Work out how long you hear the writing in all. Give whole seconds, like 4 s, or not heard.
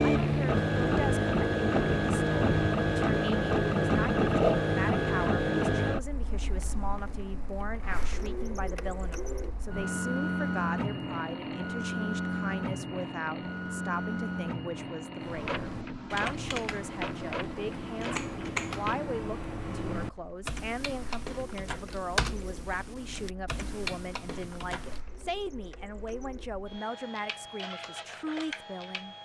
not heard.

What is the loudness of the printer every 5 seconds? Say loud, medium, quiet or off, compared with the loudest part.
loud, medium, medium, quiet, quiet, quiet.